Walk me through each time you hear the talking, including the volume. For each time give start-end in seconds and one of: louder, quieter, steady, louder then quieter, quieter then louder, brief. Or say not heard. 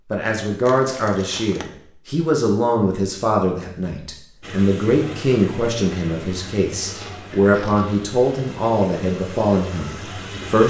0.1-10.6 steady.